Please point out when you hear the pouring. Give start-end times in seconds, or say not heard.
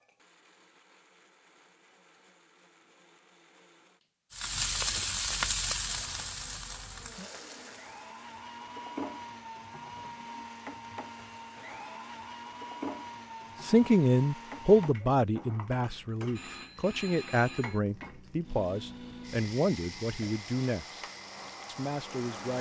not heard.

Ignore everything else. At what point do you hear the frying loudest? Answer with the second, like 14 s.
5 s.